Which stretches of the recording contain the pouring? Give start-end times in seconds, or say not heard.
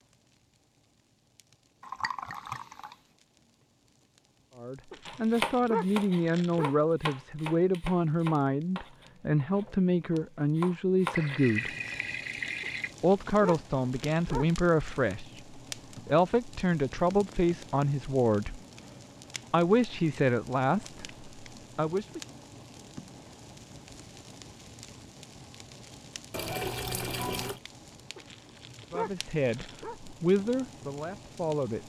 1.8-3.0, 11.1-12.9, 26.3-27.6.